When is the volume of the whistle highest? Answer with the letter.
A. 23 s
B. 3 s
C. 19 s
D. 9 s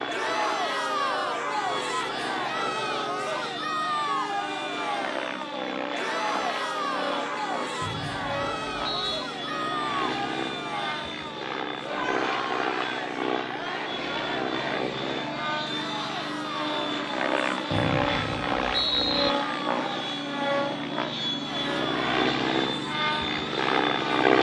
C.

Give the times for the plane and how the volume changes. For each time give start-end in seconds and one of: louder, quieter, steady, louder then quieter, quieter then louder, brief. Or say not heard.
0.0-24.3 louder.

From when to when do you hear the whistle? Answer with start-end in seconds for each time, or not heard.
7.8-9.3, 17.7-19.3.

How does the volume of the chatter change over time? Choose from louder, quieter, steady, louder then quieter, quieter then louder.
quieter.